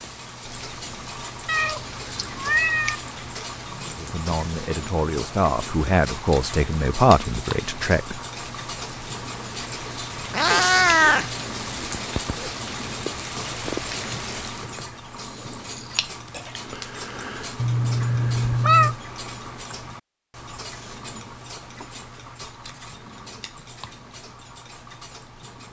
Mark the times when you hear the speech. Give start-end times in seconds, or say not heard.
4.0-8.2.